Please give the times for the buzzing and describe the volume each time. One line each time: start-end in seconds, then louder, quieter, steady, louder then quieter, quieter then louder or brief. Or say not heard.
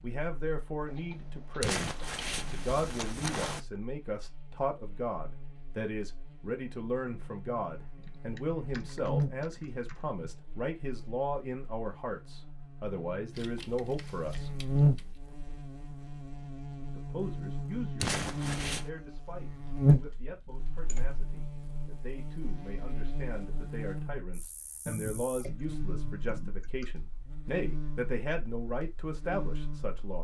0.0-30.1 louder then quieter.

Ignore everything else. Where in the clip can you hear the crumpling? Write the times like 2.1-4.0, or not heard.
1.6-3.6, 18.0-18.9.